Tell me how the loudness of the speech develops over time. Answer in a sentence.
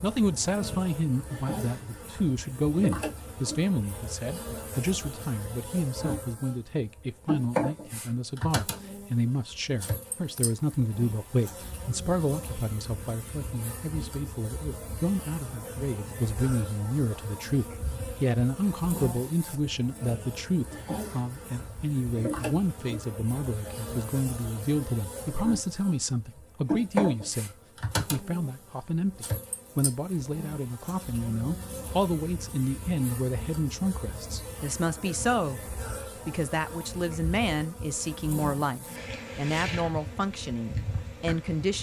The volume of the speech stays about the same.